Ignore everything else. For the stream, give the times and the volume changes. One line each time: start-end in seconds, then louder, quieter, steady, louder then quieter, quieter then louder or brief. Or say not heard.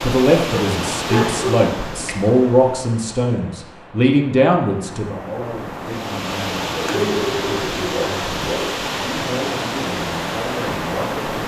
0.0-11.4 quieter then louder.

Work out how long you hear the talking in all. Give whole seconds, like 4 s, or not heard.
11 s.